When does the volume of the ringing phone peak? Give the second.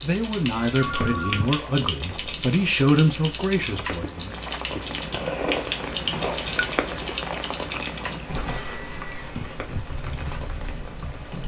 1 s.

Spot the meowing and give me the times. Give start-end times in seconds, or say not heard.
0.6-1.4, 8.9-9.8.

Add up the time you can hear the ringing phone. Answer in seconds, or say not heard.
2 s.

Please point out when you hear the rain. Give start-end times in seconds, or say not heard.
0.0-11.4.